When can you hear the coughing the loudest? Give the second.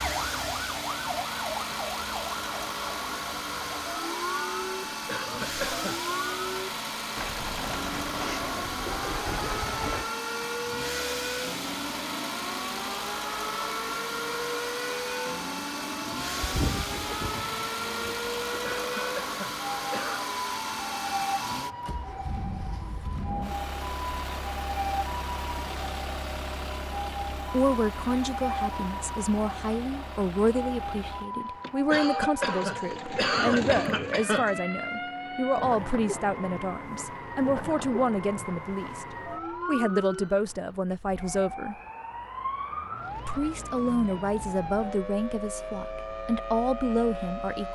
33 s.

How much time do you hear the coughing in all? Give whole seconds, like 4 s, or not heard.
5 s.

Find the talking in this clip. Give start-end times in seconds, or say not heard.
27.5-39.0, 39.6-41.8, 43.2-47.6.